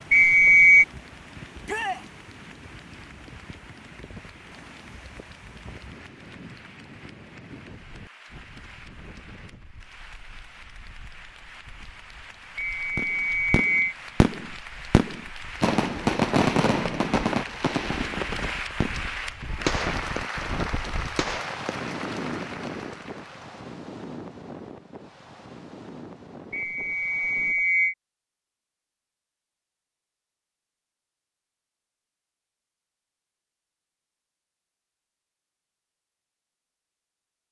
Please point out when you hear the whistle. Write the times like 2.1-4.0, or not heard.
0.1-0.8, 12.6-13.9, 26.5-27.9.